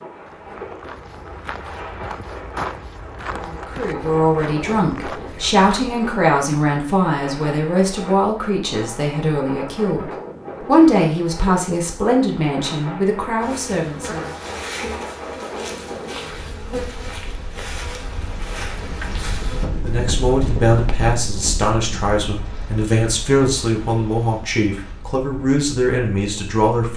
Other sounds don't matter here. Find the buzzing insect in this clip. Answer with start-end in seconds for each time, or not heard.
13.4-19.7.